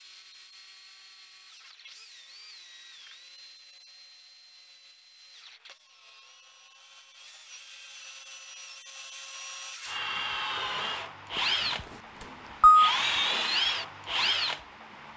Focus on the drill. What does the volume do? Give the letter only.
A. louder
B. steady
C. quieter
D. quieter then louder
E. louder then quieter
A.